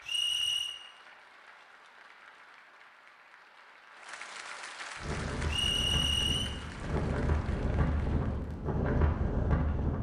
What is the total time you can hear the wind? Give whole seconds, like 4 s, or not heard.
5 s.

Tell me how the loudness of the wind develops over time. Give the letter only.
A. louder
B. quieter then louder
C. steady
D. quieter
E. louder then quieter
A.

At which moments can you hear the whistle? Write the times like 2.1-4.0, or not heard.
0.0-0.8, 5.5-6.5.